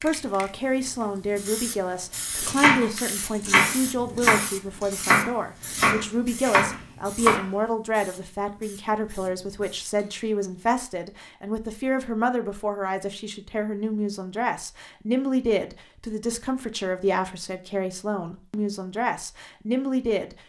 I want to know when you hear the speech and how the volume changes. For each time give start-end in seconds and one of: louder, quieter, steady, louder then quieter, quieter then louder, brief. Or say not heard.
0.0-20.4 steady.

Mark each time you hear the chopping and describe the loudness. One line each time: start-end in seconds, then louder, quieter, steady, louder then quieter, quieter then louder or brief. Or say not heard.
2.4-7.5 steady.